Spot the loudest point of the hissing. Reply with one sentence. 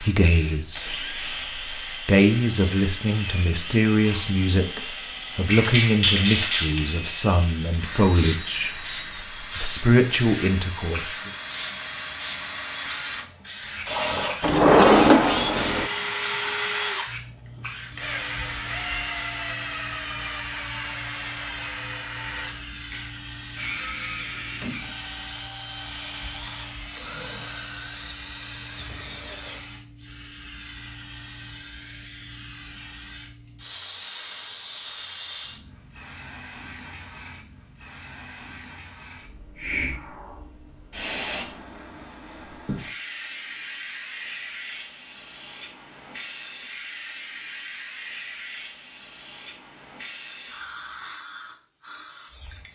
The volume of the hissing peaks at 6 seconds.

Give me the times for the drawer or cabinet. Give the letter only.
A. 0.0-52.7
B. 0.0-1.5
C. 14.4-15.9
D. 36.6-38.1
C.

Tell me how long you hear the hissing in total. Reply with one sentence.
The hissing can be heard for 53 seconds in total.